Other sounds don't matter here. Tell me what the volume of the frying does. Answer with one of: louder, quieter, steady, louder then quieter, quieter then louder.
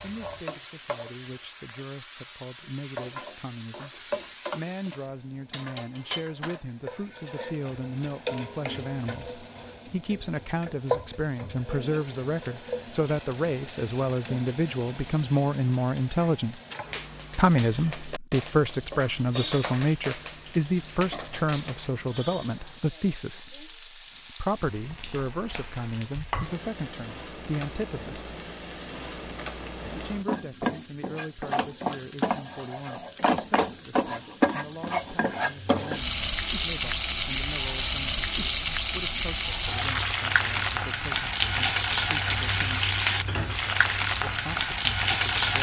louder.